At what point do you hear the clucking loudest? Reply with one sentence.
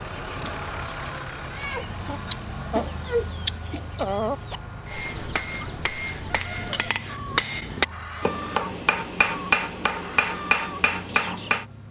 The volume of the clucking peaks at 3 seconds.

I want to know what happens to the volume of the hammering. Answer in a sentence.
The loudness of the hammering goes up.